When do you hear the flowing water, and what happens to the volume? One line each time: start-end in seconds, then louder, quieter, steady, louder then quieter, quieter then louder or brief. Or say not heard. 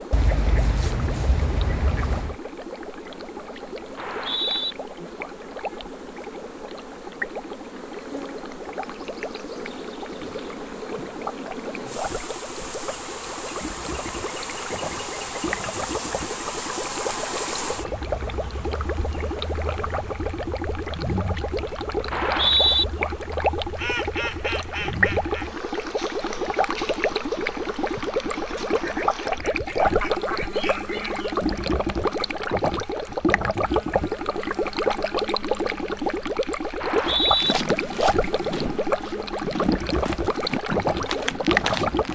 0.0-42.0 louder.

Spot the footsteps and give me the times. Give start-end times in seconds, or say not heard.
37.2-42.0.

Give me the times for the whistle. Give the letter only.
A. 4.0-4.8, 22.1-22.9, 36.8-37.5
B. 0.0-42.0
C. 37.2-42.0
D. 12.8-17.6
A.